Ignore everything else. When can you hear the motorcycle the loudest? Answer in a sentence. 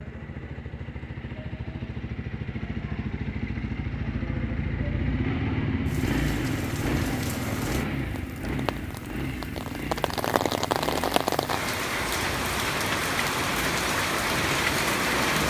The volume of the motorcycle peaks at 6 seconds.